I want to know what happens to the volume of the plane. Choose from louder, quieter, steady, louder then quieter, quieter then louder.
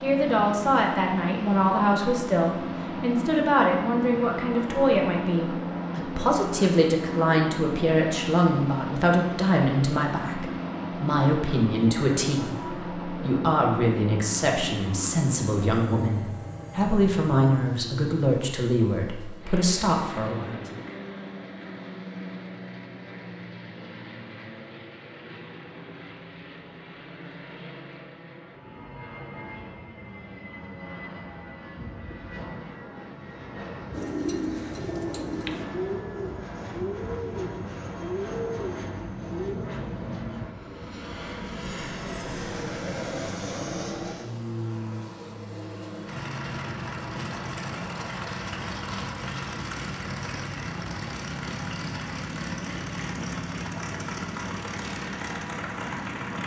quieter then louder.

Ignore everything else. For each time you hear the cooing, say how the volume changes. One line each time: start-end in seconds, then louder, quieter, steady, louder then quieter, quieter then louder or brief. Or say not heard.
33.9-39.7 steady.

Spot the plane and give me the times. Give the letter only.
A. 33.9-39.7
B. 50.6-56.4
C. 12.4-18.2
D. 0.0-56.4
D.